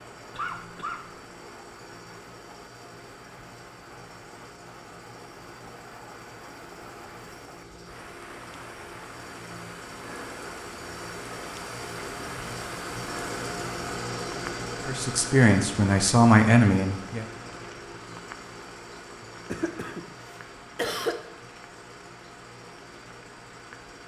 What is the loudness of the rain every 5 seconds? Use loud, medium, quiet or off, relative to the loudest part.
medium, medium, loud, medium, medium.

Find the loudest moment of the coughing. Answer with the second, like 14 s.
21 s.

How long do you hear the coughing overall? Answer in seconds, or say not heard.
3 s.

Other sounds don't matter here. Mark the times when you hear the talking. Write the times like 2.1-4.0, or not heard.
14.8-17.2.